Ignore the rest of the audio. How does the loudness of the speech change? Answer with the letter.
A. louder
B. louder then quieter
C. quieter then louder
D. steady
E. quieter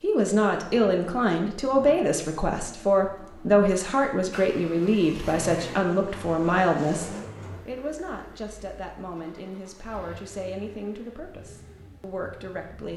E.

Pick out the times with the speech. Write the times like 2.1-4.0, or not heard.
0.0-12.9.